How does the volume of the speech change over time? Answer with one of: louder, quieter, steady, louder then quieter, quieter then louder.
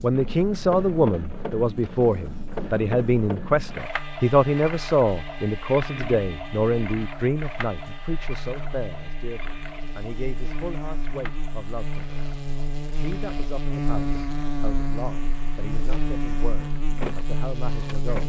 quieter.